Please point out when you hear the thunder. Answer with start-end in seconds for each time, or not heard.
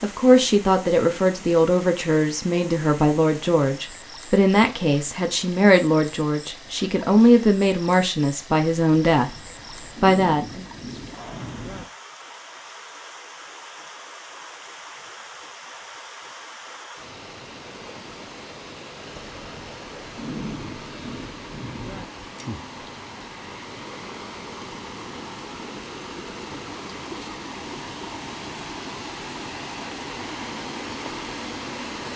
9.2-11.8, 19.1-22.1.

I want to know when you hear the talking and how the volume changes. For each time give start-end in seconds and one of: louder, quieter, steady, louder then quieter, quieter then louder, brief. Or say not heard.
0.0-9.3 steady
10.0-10.7 brief.